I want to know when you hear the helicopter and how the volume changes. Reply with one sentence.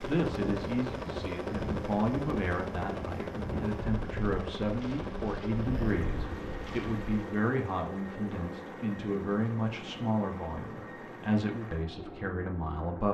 You can hear the helicopter from 0.0 to 13.1 s, getting quieter.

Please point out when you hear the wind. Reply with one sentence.
You can hear the wind from 0.2 to 7.1 s.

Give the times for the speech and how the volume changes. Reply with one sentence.
You can hear the speech from 0.0 to 13.1 s, at a steady volume.